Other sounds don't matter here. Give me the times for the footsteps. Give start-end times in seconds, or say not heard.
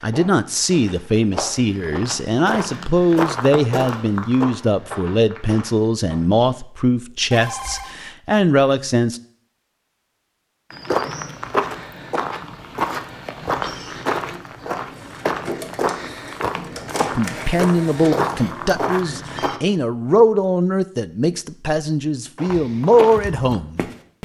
0.0-6.5, 10.7-19.6, 22.4-24.1.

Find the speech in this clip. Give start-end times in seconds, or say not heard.
0.0-9.2, 17.0-23.9.